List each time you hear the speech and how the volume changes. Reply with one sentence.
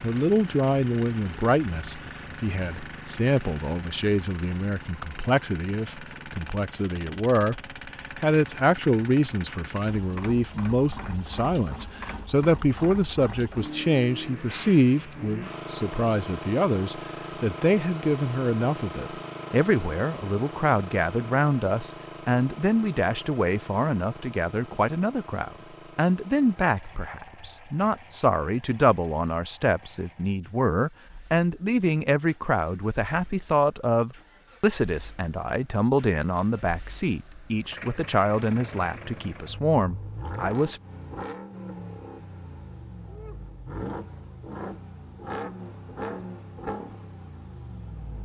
The speech can be heard from 0.0 to 40.8 s, at a steady volume.